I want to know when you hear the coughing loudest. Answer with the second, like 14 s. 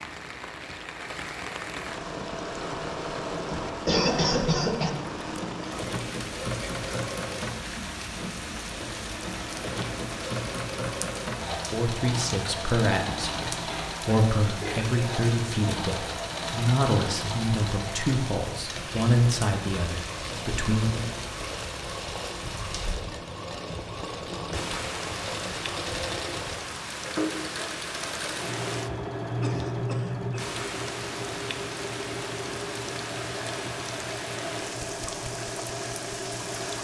4 s.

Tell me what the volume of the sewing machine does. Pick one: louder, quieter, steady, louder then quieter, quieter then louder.
steady.